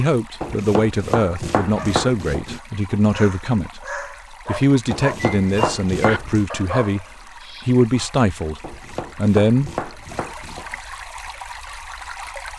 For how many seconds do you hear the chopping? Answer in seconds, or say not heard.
6 s.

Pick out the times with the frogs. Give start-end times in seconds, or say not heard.
not heard.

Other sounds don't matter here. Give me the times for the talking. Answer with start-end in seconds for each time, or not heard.
0.0-3.9, 4.5-7.0, 7.7-9.8.